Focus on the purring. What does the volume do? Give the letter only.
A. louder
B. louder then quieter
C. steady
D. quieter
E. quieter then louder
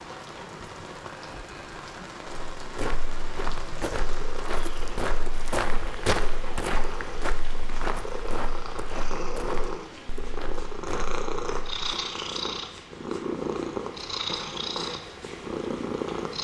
A.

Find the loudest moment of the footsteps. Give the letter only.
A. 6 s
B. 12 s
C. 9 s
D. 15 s
A.